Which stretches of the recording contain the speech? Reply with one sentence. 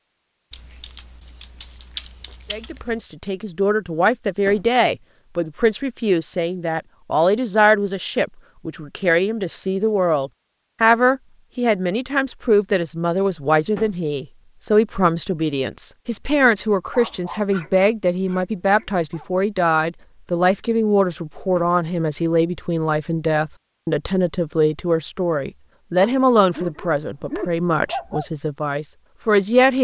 The speech can be heard from 2.5 to 29.7 s.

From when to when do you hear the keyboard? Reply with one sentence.
The keyboard can be heard from 0.5 to 3.1 s.